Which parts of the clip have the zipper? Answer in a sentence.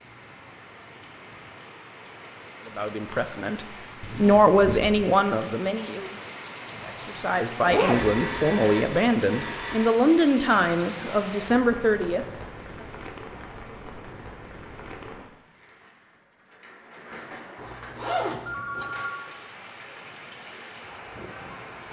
You can hear the zipper from 4.0 to 5.0 s, from 7.7 to 8.1 s and from 17.6 to 19.1 s.